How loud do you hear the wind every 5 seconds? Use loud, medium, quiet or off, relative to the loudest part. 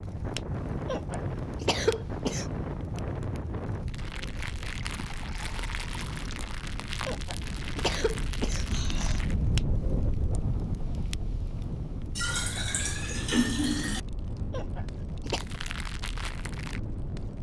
loud, loud, loud, medium.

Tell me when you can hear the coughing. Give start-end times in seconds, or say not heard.
0.8-2.5, 7.0-9.2, 14.5-15.4.